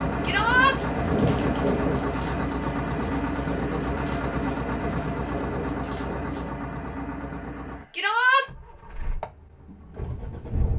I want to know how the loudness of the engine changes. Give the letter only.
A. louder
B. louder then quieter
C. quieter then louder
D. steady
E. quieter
E.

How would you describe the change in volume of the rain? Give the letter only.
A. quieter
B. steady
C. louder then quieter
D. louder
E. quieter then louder
A.